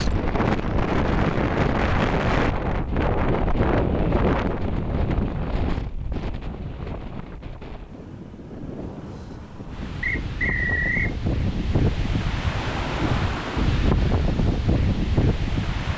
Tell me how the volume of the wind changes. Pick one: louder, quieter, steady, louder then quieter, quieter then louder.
quieter then louder.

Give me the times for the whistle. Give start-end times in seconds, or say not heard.
10.0-11.2.